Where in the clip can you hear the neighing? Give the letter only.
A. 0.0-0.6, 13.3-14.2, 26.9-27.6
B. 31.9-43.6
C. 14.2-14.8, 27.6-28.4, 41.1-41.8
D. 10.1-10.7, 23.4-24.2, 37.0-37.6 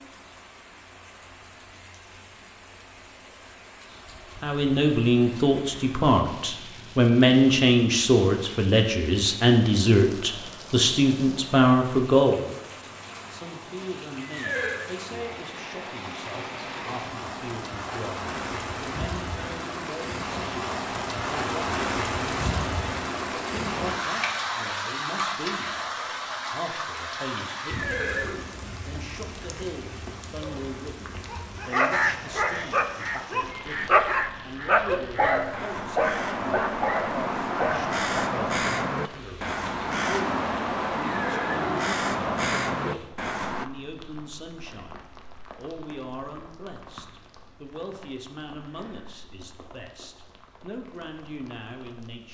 C.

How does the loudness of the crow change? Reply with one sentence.
The loudness of the crow goes up.